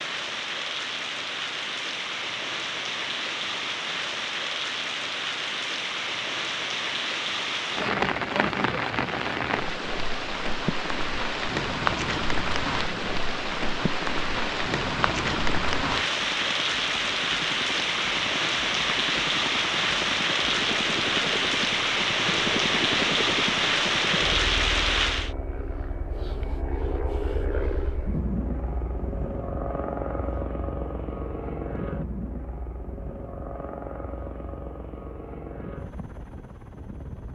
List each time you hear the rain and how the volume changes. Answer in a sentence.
The rain can be heard from 0.0 to 25.3 s, getting louder.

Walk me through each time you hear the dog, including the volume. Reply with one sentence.
The dog can't be heard in this clip.